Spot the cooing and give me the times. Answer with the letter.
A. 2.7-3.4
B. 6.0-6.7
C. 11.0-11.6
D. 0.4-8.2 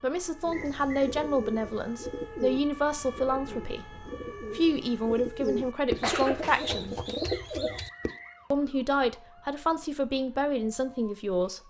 D.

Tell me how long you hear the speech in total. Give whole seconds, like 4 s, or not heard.
10 s.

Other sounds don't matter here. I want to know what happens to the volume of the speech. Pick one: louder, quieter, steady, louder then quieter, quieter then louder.
steady.